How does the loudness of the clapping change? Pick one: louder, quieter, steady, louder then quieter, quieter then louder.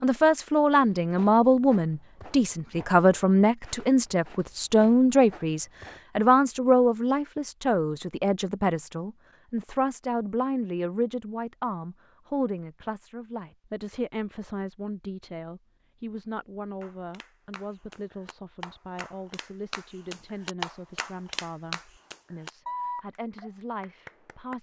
louder.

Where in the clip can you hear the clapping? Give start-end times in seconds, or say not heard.
16.8-24.5.